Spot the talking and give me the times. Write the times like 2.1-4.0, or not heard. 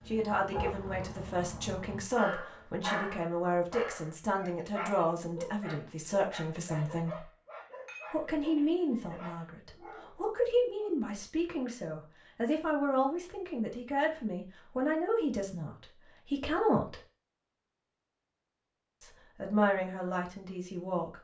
0.1-7.2, 8.1-16.9, 19.0-21.1.